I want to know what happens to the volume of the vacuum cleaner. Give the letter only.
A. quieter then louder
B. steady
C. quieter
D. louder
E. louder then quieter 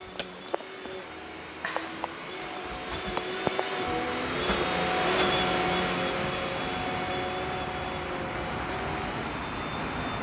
E.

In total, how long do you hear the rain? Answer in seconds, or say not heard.
10 s.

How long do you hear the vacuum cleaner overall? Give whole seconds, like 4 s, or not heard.
10 s.